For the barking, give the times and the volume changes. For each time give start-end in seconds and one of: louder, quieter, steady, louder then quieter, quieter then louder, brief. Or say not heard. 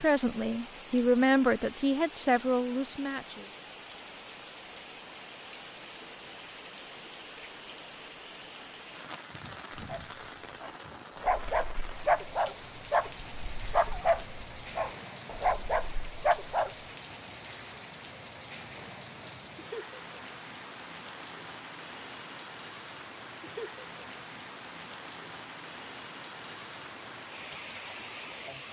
9.7-16.8 steady.